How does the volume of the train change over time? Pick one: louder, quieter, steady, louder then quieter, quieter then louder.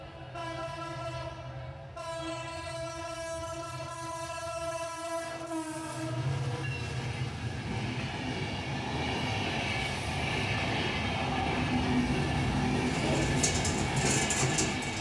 louder.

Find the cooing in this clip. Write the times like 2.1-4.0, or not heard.
12.8-14.9.